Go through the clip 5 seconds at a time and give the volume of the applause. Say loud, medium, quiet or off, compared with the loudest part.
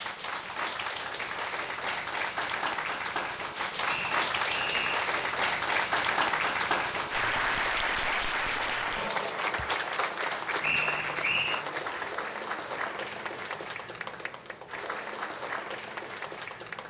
loud, loud, medium, medium.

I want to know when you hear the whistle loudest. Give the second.
11 s.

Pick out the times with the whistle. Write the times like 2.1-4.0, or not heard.
3.9-5.1, 10.6-11.7.